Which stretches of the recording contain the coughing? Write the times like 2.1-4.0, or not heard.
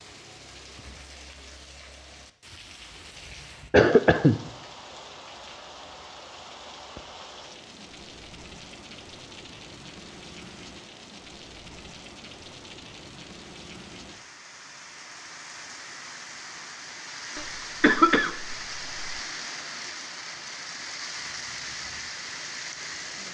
3.7-4.4, 17.4-19.1.